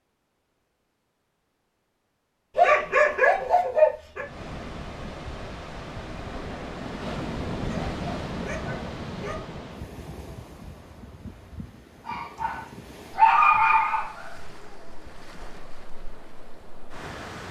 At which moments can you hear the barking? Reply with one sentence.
The barking can be heard from 2.5 to 4.2 s, from 7.7 to 9.4 s and from 12.1 to 14.3 s.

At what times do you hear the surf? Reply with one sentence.
You can hear the surf from 4.2 to 17.4 s.